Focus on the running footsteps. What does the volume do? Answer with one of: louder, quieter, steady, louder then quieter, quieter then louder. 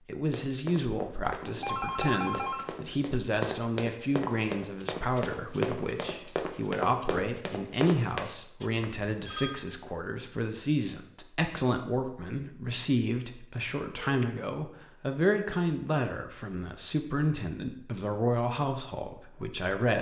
louder.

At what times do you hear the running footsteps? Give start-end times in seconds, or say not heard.
0.3-8.3.